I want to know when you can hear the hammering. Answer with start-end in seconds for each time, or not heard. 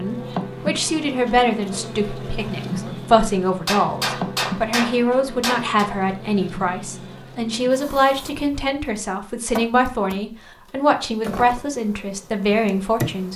3.6-5.8.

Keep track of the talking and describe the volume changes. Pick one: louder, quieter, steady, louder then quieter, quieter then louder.
steady.